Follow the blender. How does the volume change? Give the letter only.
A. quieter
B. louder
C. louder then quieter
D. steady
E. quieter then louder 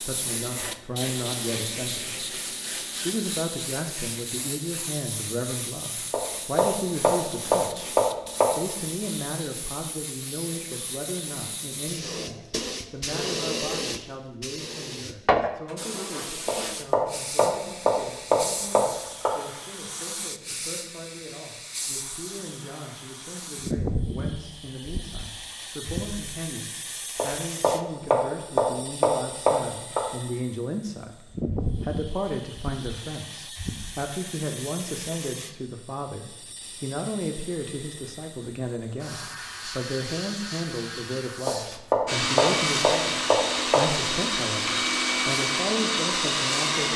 D.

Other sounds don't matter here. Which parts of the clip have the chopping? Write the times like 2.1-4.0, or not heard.
6.1-8.4, 16.4-19.3, 27.1-30.0, 41.5-43.8.